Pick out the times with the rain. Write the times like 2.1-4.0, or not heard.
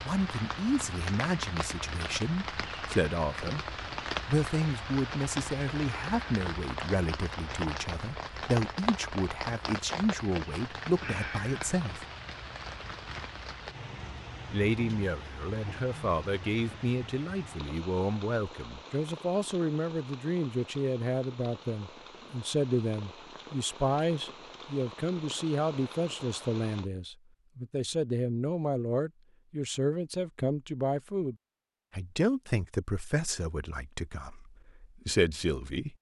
0.0-26.9.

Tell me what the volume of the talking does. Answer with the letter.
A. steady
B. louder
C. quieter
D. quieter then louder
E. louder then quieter
A.